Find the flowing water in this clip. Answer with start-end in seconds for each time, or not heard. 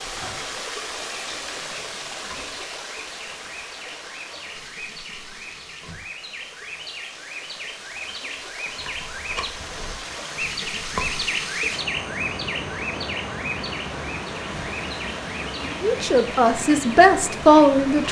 0.0-18.0.